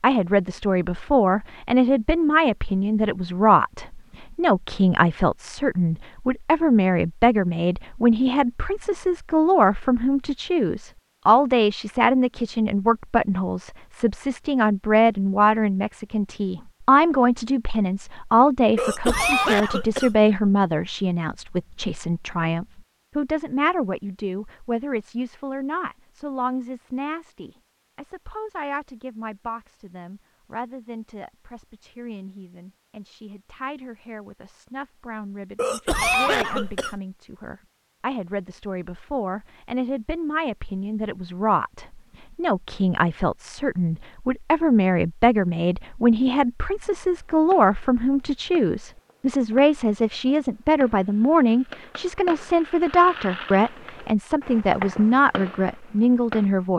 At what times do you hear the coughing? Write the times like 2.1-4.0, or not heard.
18.8-20.2, 35.5-37.0.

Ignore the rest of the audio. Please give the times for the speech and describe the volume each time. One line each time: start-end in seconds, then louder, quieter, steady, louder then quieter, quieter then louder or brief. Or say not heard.
0.0-56.7 quieter then louder.